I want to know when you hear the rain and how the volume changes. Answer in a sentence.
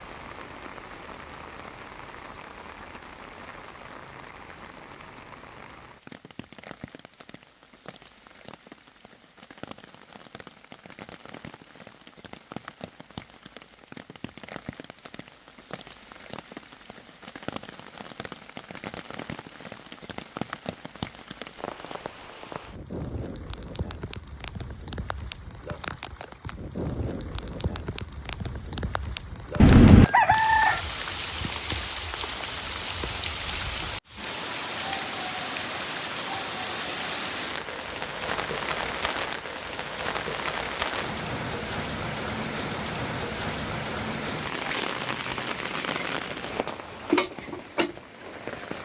You can hear the rain from 0.0 to 48.8 s, getting louder.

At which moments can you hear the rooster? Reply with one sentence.
The rooster can be heard from 29.6 to 30.8 s.